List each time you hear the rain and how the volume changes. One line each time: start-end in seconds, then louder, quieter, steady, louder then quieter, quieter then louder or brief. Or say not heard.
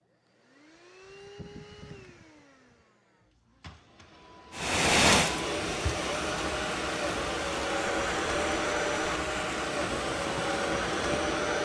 4.5-11.6 quieter.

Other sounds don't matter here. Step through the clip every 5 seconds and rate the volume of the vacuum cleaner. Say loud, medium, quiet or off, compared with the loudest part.
quiet, loud, loud.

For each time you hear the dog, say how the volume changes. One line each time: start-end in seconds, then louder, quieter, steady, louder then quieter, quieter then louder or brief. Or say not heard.
not heard.